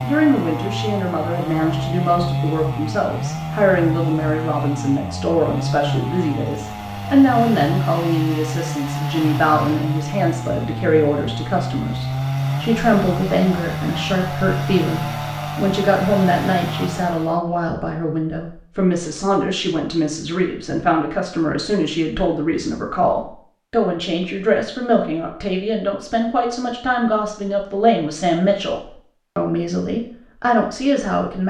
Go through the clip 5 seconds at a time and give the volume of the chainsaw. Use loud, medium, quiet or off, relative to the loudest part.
loud, loud, loud, loud, off, off, off.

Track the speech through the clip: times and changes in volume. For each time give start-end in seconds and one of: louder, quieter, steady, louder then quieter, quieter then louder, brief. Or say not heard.
0.0-31.4 steady.